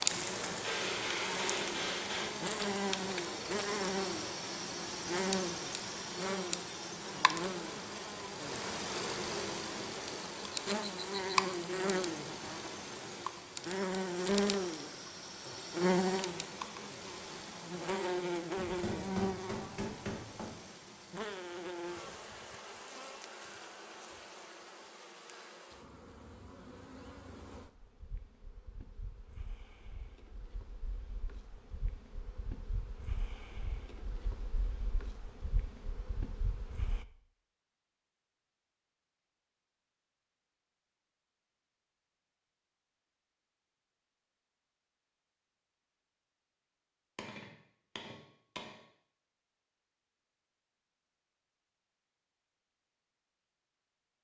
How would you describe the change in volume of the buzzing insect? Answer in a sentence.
The loudness of the buzzing insect goes down.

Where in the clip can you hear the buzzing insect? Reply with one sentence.
You can hear the buzzing insect from 0.0 to 37.0 s.